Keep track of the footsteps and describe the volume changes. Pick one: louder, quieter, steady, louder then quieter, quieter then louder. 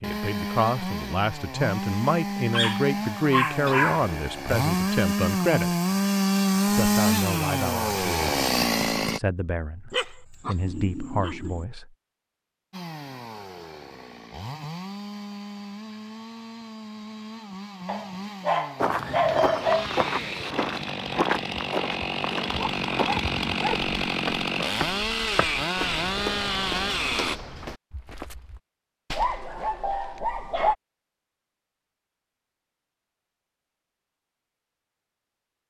quieter.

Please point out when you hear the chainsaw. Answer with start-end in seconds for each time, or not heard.
0.0-9.2, 12.7-27.4.